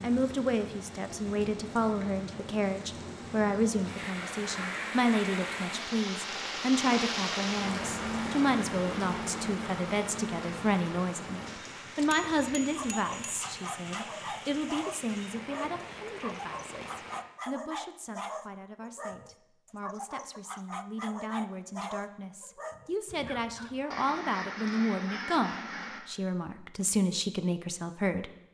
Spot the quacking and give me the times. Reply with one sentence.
The quacking can be heard from 4.2 to 5.5 s and from 23.9 to 26.0 s.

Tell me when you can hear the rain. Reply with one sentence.
You can hear the rain from 0.0 to 17.2 s.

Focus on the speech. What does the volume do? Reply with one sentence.
The loudness of the speech goes down, then up.